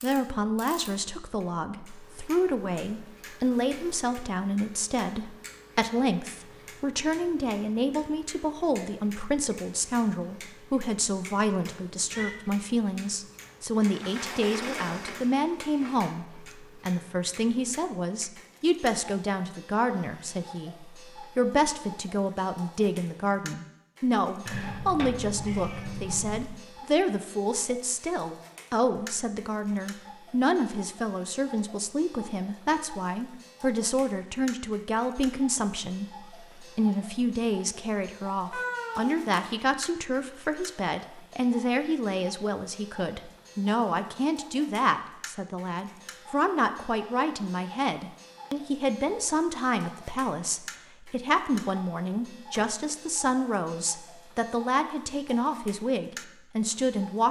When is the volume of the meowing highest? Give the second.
39 s.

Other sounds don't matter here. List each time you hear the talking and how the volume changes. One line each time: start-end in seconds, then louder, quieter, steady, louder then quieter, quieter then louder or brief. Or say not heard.
0.0-57.2 steady.